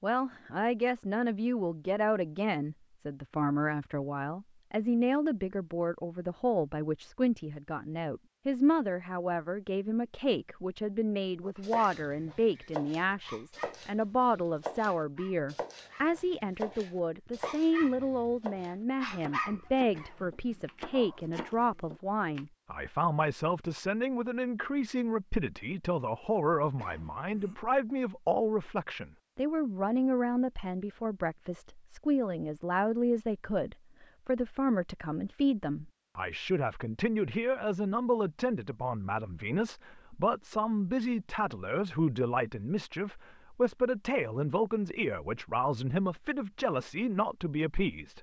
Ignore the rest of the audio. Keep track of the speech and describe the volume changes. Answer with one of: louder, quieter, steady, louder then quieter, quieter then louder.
steady.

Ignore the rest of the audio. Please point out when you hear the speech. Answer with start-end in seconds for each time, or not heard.
0.0-48.1.